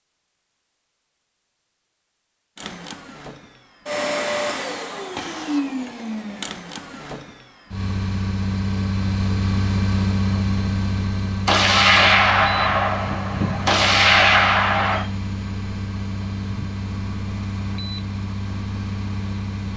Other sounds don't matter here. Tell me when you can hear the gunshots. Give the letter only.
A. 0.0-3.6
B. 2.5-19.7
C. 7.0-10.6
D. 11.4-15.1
D.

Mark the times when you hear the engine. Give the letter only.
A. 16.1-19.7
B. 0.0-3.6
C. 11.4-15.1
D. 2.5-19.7
D.